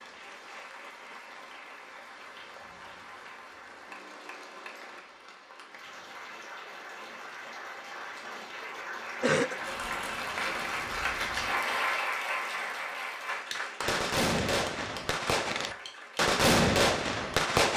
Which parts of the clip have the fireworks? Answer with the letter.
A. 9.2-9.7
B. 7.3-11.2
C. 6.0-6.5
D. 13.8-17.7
D.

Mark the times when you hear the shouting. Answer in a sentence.
The shouting can't be heard in this clip.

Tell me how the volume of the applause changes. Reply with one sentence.
The loudness of the applause goes up, then down.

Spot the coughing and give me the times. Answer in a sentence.
The coughing can be heard from 9.2 to 9.7 s.